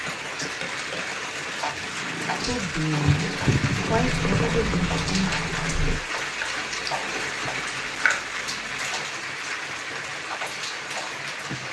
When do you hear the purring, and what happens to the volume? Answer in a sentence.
The purring can be heard from 0.0 to 6.0 s, getting louder.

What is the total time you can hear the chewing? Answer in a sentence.
You can hear the chewing for 3 seconds altogether.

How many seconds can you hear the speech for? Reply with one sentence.
You can hear the speech for 3 seconds altogether.